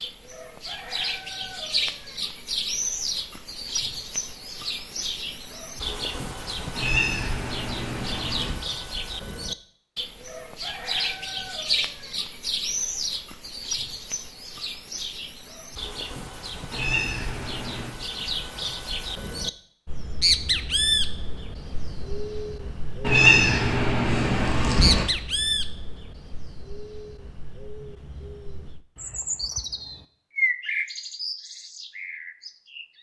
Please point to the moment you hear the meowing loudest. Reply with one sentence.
The volume of the meowing peaks at 23 seconds.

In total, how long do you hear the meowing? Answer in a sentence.
The meowing can be heard for 5 seconds in total.